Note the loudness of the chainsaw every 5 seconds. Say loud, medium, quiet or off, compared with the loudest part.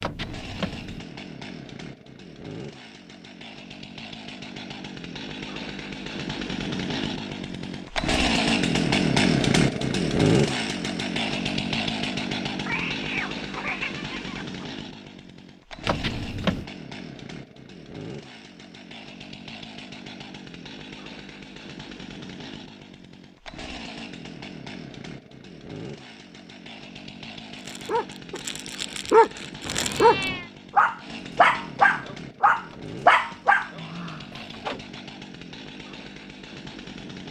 quiet, loud, loud, quiet, quiet, quiet, quiet, quiet.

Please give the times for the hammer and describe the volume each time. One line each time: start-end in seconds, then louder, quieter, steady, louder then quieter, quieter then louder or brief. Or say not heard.
not heard.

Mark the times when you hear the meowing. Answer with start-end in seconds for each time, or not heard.
12.7-14.7, 29.6-30.5.